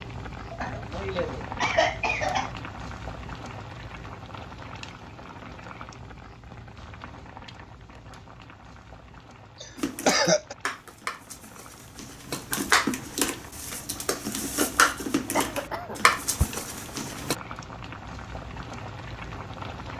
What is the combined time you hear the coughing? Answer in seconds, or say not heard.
4 s.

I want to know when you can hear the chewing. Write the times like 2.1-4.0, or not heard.
not heard.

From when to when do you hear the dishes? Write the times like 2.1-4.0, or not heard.
9.8-17.4.